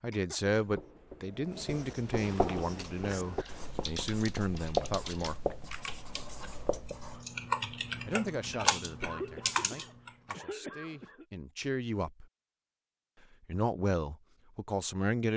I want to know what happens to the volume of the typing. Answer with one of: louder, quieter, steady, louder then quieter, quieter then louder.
louder.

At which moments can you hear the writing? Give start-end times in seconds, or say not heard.
0.6-7.2.